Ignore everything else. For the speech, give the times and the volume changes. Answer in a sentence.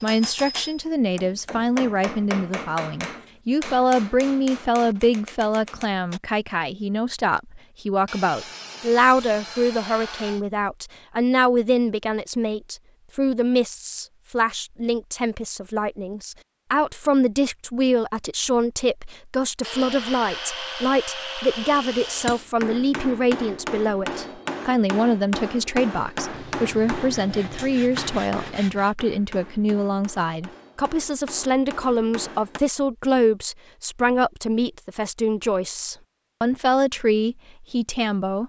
The speech can be heard from 0.0 to 38.4 s, at a steady volume.